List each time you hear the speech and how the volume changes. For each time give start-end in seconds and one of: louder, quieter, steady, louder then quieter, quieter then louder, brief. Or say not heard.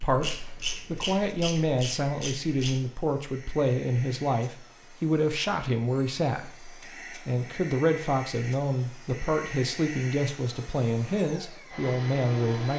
0.0-12.7 steady.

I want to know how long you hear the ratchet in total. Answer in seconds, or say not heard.
3 s.